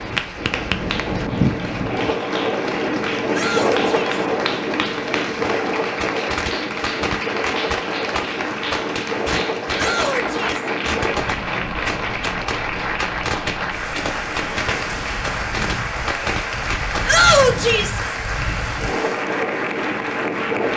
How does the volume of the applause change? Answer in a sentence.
The volume of the applause stays about the same.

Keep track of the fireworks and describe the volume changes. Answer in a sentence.
The volume of the fireworks stays about the same.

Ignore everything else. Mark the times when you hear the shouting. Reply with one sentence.
The shouting can be heard from 3.3 to 4.2 s, from 9.8 to 10.7 s and from 17.1 to 18.0 s.